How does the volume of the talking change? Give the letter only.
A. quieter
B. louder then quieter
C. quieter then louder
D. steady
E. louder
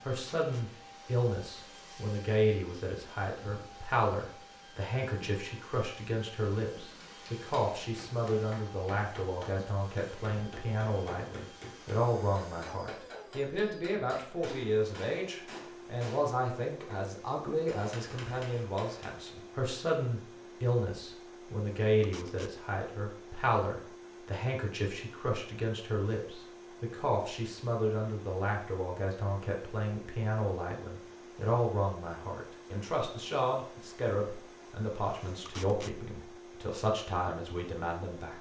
D.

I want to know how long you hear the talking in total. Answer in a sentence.
The talking can be heard for 38 seconds in total.